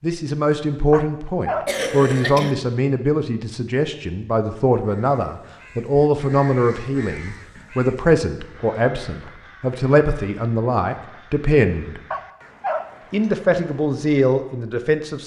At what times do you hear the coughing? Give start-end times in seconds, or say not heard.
1.6-2.5.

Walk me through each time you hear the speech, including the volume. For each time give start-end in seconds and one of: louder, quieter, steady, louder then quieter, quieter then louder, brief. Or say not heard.
0.0-12.0 steady
13.1-15.2 brief.